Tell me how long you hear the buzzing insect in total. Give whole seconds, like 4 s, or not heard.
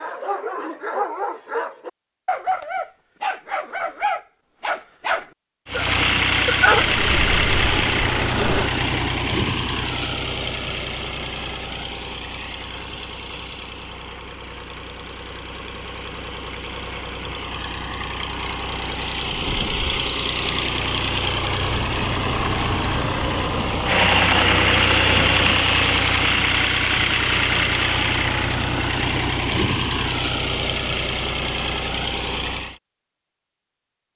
2 s.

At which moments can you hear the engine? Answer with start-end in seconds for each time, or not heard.
5.7-32.8.